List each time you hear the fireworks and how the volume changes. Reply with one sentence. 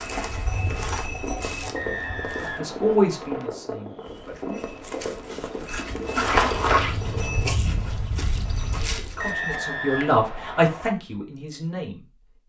The fireworks can be heard from 0.6 to 7.5 s, at a steady volume.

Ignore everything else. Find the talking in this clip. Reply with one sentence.
The talking can be heard from 2.4 to 4.6 s and from 8.8 to 12.1 s.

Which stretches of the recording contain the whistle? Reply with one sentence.
The whistle can be heard from 1.8 to 3.5 s and from 9.2 to 10.9 s.